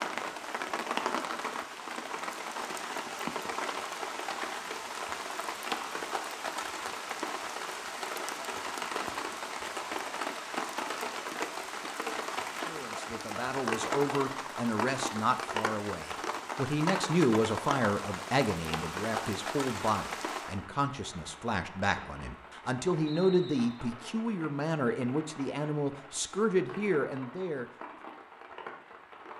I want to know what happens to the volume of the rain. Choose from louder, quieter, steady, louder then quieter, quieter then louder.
quieter.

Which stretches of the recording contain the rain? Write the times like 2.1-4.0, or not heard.
0.0-29.3.